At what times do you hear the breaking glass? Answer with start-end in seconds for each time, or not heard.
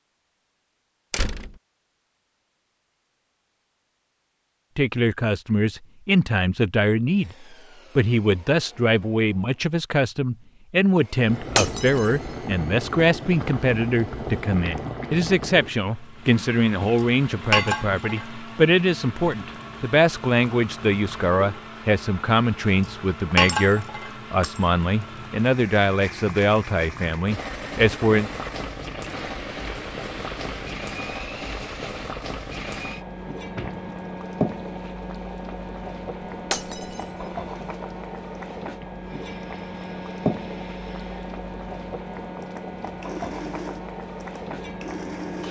11.5-12.3, 23.5-24.6, 36.5-37.2.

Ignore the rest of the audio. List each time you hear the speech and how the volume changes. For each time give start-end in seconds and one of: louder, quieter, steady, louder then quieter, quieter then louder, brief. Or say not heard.
4.8-28.3 steady.